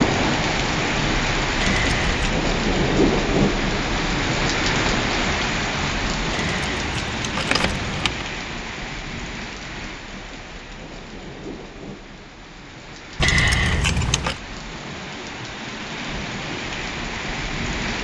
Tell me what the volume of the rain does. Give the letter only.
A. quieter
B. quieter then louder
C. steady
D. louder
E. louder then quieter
B.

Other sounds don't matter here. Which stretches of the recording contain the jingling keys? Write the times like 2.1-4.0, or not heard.
1.6-2.2, 6.3-8.2, 13.2-14.3.